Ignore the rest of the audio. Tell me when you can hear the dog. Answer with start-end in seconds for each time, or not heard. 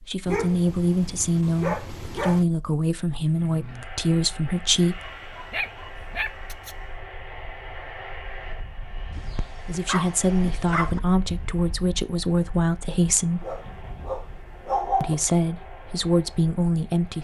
0.2-2.5, 4.8-6.8, 9.1-11.0, 13.4-15.2.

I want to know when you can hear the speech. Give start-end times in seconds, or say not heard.
0.0-5.1, 9.7-13.4, 15.0-17.1.